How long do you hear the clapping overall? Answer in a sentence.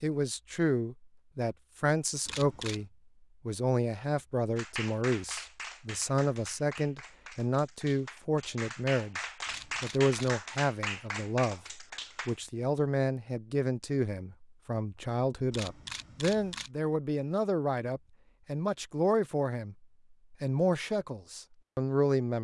The clapping can be heard for 8 seconds in total.